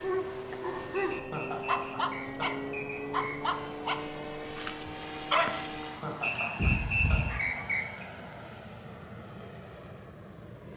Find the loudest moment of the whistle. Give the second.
7 s.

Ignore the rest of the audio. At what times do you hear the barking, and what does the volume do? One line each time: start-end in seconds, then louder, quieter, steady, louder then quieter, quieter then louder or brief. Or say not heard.
0.0-7.7 steady.